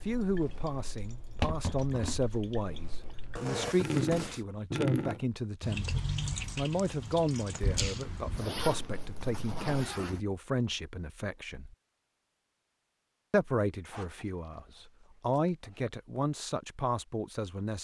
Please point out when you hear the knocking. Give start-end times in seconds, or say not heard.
not heard.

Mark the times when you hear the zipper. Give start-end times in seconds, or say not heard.
3.4-4.5, 8.3-10.2, 13.8-15.8.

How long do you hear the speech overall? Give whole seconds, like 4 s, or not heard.
16 s.